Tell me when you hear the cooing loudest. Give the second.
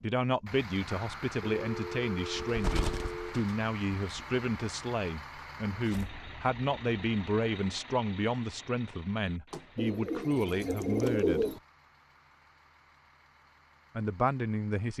11 s.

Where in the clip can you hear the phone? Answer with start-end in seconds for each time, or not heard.
1.4-3.4, 9.5-11.2.